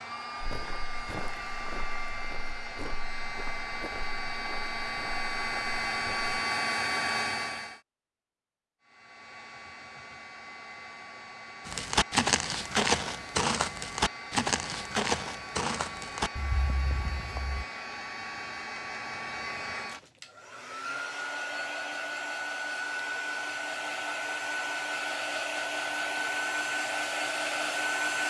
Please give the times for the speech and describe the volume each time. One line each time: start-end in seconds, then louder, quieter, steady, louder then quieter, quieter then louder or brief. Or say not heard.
not heard.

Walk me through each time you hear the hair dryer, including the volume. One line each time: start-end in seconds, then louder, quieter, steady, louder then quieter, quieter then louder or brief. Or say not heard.
0.0-7.8 louder
8.8-28.2 louder.